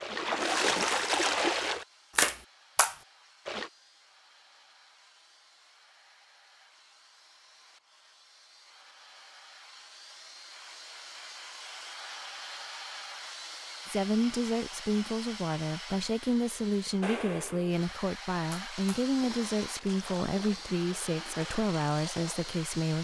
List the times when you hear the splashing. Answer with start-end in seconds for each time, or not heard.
0.0-3.7, 18.5-22.6.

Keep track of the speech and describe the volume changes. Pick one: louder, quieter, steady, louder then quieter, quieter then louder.
steady.